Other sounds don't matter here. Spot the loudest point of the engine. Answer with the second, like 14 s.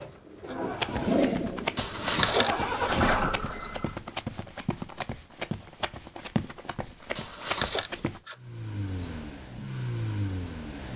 3 s.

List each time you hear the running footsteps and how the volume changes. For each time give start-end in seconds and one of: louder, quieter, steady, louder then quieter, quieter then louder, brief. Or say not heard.
0.8-8.2 steady.